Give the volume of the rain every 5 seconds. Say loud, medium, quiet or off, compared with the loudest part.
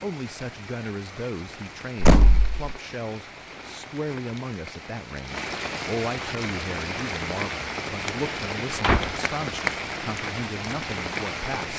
medium, loud, loud.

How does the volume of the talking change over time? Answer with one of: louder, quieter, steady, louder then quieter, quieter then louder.
steady.